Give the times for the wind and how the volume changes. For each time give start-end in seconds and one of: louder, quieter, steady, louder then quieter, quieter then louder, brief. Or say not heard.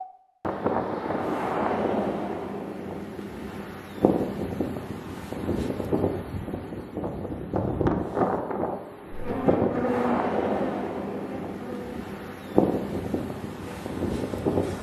0.0-14.7 steady.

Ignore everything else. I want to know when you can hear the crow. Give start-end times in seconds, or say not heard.
not heard.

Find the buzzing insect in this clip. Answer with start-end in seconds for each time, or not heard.
9.1-14.7.